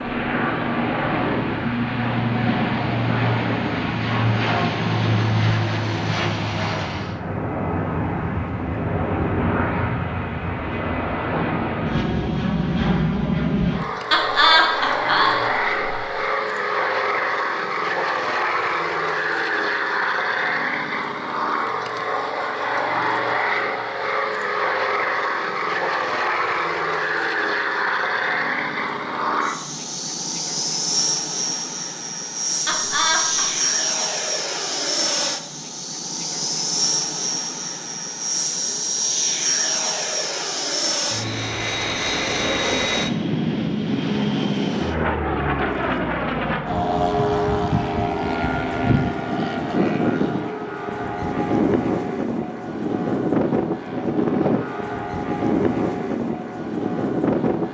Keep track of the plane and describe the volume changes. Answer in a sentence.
The volume of the plane stays about the same.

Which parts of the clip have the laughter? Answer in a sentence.
The laughter can be heard from 14.1 to 16.1 s and from 32.6 to 33.7 s.